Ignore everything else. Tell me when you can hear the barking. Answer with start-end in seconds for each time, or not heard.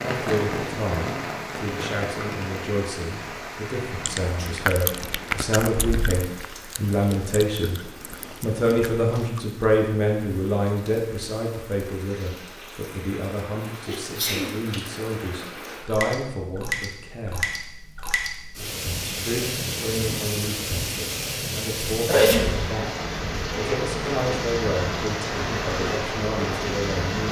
not heard.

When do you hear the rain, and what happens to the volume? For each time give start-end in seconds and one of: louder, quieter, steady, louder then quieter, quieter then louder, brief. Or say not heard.
0.0-27.2 quieter then louder.